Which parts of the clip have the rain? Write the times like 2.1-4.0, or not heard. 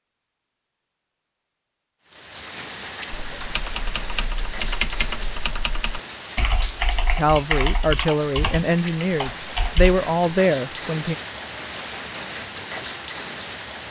2.0-13.8.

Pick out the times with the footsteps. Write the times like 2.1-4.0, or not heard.
not heard.